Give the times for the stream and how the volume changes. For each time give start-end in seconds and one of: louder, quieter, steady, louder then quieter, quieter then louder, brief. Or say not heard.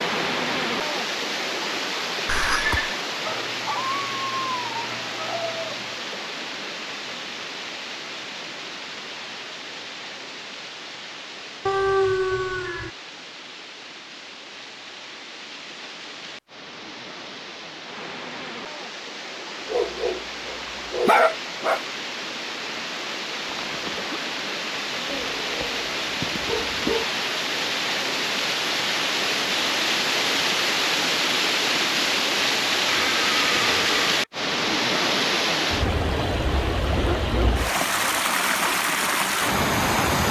0.0-40.2 quieter then louder.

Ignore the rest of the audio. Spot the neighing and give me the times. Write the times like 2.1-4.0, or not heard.
2.2-3.0, 23.4-24.1, 32.9-34.0.